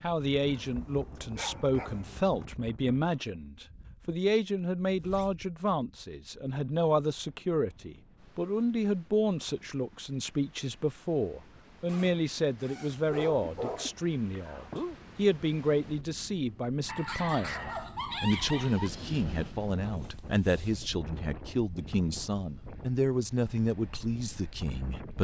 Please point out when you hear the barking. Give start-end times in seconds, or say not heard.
0.5-2.5, 13.1-15.0, 16.9-18.9.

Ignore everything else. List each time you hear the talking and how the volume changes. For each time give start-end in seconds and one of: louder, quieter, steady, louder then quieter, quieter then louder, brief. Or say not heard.
0.0-25.1 steady.